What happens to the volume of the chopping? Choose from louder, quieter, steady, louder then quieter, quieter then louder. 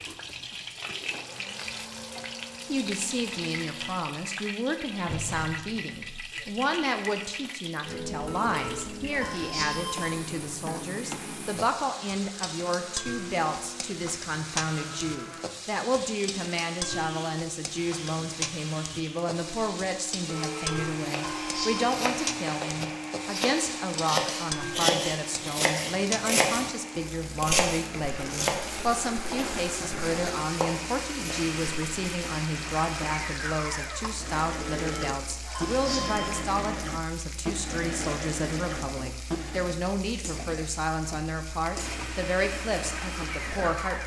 louder then quieter.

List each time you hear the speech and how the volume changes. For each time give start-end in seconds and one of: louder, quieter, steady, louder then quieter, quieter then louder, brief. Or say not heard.
2.6-44.0 steady.